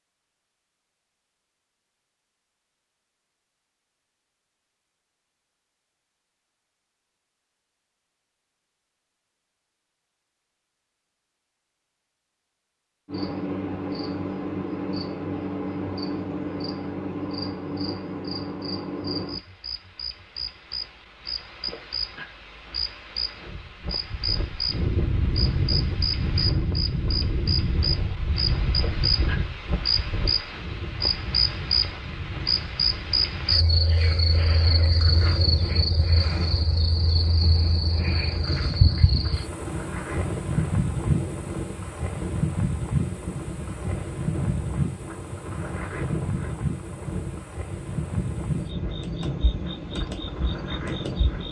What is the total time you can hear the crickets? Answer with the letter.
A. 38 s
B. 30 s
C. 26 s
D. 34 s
A.